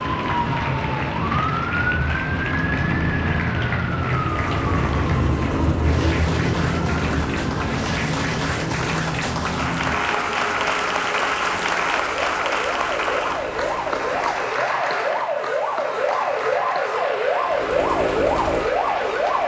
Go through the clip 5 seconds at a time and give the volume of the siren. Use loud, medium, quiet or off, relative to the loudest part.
loud, loud, medium, loud.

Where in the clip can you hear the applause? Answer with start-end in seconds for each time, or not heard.
0.0-19.4.